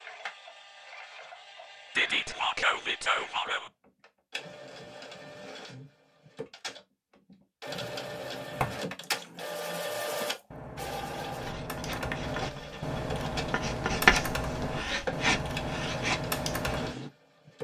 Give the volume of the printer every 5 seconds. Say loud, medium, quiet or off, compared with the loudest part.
medium, loud, loud, loud.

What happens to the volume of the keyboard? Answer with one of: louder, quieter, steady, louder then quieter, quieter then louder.
louder.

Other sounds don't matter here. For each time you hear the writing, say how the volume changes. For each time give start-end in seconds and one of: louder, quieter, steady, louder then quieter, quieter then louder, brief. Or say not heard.
11.4-17.1 louder then quieter.